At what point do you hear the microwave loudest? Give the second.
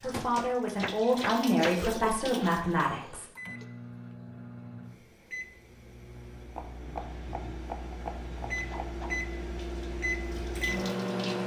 11 s.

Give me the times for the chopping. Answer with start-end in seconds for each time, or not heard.
0.3-1.9, 6.5-9.0.